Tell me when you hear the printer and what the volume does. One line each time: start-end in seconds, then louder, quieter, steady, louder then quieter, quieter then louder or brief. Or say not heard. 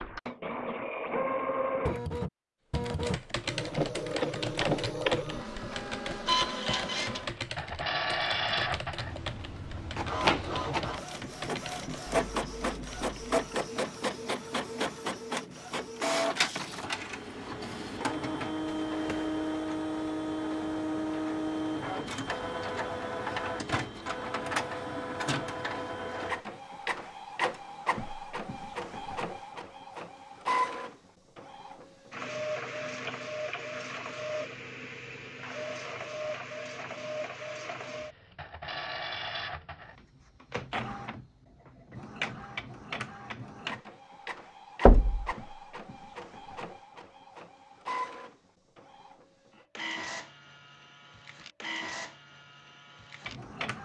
0.0-53.8 quieter.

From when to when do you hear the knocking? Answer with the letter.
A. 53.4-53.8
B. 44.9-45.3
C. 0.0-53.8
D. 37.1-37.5
B.